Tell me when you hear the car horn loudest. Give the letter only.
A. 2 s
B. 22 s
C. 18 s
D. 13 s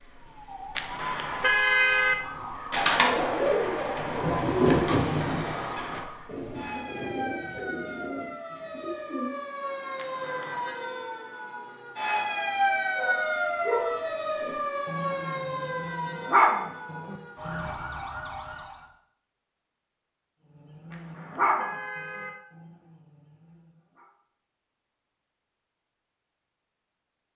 A.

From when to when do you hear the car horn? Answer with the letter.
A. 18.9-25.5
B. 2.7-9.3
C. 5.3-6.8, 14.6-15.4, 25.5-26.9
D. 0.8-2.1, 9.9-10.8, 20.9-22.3
D.